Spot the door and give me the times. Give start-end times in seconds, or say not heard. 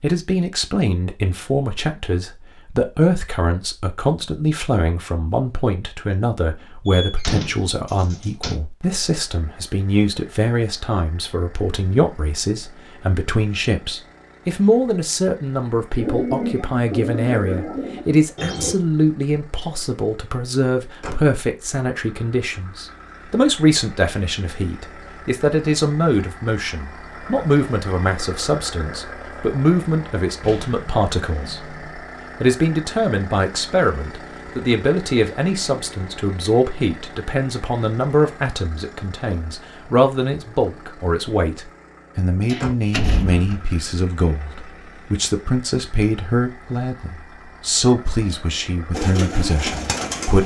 6.8-8.6, 30.4-31.9, 42.5-43.6.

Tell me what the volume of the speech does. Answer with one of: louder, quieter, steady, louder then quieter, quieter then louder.
steady.